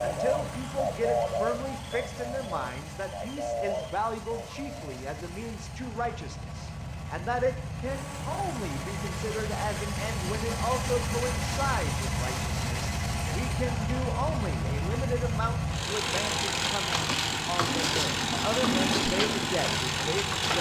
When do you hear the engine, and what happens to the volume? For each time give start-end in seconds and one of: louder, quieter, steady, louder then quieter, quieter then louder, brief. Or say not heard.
0.0-20.5 louder.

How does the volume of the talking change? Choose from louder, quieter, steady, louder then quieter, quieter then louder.
steady.